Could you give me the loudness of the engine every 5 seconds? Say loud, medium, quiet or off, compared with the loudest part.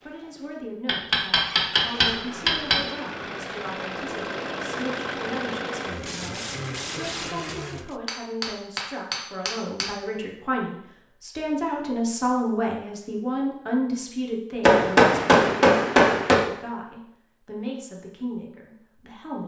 loud, loud, off, off.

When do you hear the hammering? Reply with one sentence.
The hammering can be heard from 0.8 to 2.8 s, from 8.1 to 9.9 s and from 14.6 to 16.4 s.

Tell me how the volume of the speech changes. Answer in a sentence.
The loudness of the speech goes up, then down.